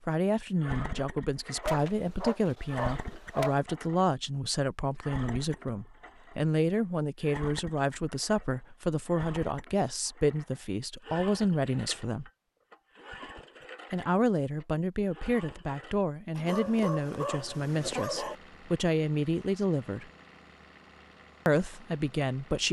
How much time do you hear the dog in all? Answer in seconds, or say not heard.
4 s.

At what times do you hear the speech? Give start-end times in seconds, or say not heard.
0.1-12.3, 13.9-20.1, 21.4-22.6.